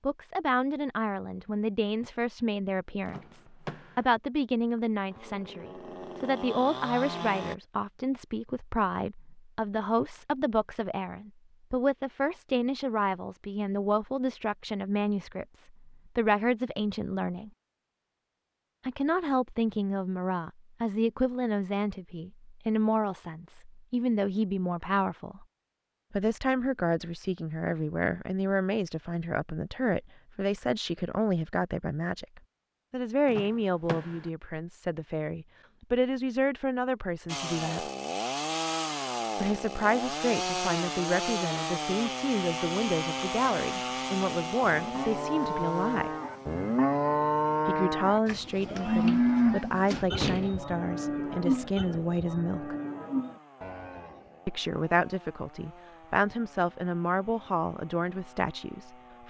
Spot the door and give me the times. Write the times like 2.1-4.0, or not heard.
3.0-4.0, 33.2-34.3, 49.0-50.6.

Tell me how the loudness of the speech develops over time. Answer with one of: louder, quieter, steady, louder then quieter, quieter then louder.
steady.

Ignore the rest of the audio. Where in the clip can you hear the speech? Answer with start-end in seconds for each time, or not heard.
0.0-17.5, 18.9-25.4, 26.1-37.9, 39.4-46.1, 47.6-52.8, 54.5-59.2.